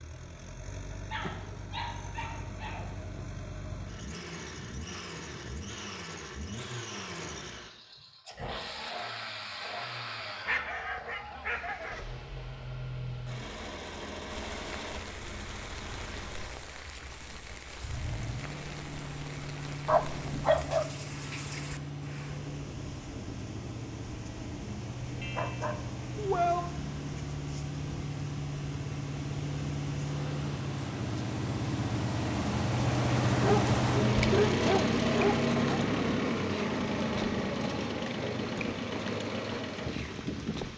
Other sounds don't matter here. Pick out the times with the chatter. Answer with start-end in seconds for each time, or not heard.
not heard.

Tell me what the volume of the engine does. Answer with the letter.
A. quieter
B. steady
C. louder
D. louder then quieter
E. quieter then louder
C.